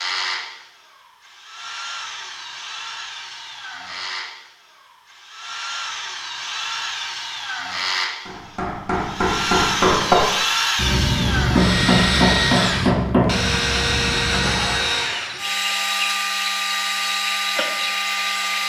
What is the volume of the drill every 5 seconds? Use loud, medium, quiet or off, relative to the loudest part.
medium, medium, loud, loud.